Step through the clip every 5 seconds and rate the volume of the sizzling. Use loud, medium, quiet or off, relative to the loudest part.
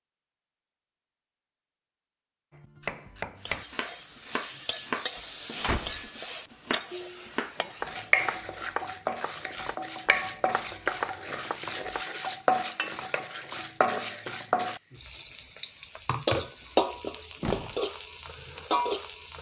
medium, loud, loud, loud.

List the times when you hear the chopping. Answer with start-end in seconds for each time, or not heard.
2.5-12.1.